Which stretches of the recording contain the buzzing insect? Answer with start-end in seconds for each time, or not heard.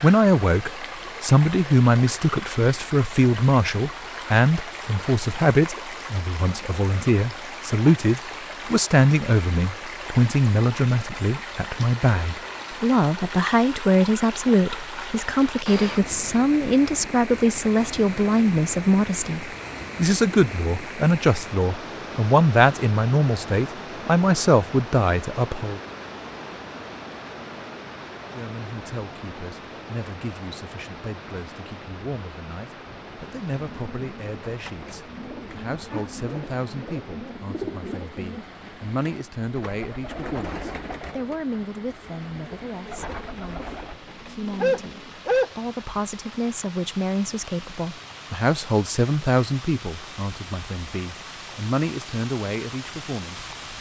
not heard.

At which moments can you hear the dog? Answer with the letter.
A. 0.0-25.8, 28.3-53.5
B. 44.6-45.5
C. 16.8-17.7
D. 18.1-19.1
B.